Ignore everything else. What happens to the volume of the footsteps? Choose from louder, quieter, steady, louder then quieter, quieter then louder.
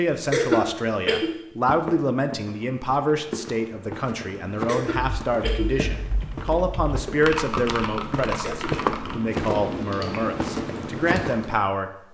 louder.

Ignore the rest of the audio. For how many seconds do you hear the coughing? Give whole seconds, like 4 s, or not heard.
3 s.